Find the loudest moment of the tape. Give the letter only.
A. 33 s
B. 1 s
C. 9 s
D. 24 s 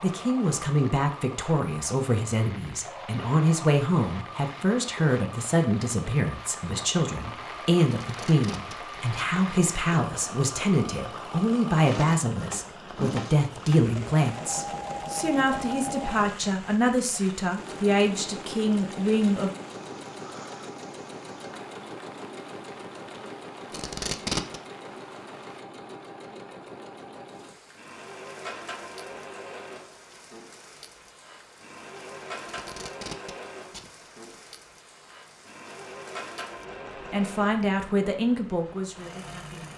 D.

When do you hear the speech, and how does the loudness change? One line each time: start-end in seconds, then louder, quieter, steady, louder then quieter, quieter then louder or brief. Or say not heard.
0.0-19.5 steady
37.1-39.7 brief.